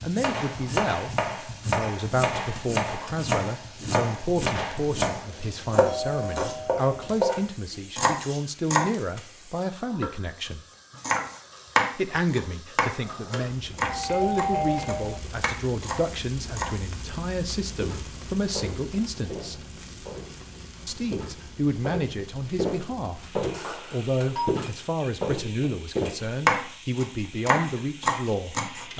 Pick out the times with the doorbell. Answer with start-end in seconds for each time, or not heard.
5.2-7.2, 13.8-15.2, 23.5-24.6.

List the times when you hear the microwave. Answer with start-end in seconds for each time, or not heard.
not heard.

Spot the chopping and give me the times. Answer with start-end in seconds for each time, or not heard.
0.0-8.9, 11.0-16.9, 26.4-28.9.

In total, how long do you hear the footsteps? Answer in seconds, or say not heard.
8 s.